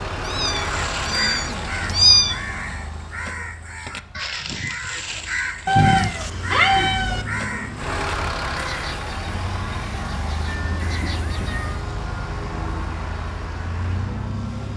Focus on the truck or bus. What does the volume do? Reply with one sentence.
The volume of the truck or bus goes down, then up.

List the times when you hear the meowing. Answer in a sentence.
You can hear the meowing from 0.2 to 2.4 s, from 5.7 to 7.2 s and from 10.4 to 11.8 s.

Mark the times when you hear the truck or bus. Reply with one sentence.
The truck or bus can be heard from 0.0 to 14.7 s.